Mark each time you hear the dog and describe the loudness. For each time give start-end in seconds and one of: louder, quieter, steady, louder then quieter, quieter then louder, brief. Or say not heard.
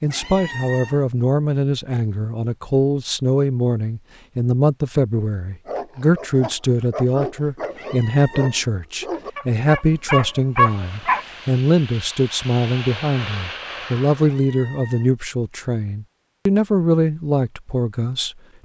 5.7-11.2 louder.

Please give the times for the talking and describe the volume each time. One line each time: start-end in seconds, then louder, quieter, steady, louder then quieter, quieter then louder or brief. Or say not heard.
0.0-18.4 steady.